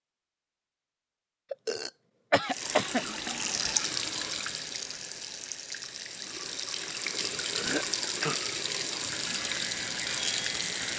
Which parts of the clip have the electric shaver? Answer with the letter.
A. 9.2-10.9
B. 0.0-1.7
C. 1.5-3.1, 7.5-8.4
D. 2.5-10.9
A.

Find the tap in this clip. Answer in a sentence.
The tap can be heard from 2.5 to 10.9 s.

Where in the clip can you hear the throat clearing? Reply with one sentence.
You can hear the throat clearing from 1.5 to 3.1 s and from 7.5 to 8.4 s.